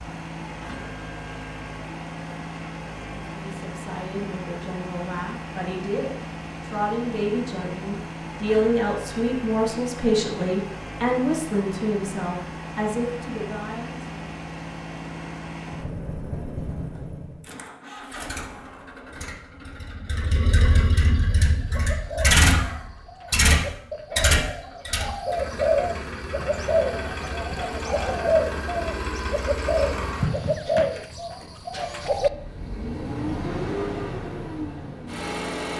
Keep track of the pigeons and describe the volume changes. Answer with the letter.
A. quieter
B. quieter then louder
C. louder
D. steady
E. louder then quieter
C.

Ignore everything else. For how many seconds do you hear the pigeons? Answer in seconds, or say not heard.
11 s.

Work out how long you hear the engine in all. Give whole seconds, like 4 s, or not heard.
36 s.